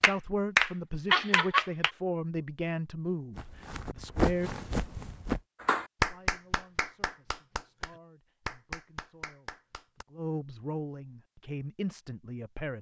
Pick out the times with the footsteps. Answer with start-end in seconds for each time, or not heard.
3.4-5.4.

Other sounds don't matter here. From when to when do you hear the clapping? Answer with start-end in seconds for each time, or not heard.
0.0-1.9, 5.6-10.1.